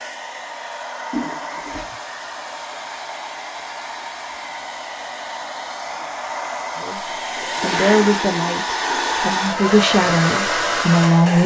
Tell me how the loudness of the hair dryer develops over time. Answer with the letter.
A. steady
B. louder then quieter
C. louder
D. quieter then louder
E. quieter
C.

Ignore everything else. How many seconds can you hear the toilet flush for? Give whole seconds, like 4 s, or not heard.
3 s.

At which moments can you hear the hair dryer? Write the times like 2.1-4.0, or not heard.
0.0-11.4.